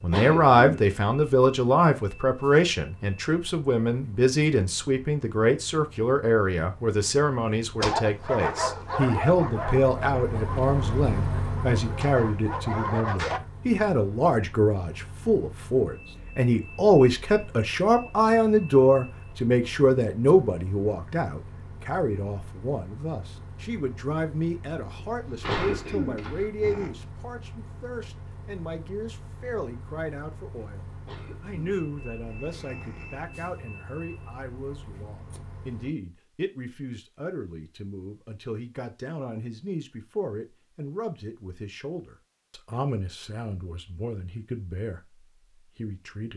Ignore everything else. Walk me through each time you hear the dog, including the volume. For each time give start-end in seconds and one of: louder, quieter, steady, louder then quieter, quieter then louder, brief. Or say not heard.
7.8-13.4 quieter then louder.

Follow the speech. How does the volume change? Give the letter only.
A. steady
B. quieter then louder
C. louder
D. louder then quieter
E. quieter
E.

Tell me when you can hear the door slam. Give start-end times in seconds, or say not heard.
25.1-26.5.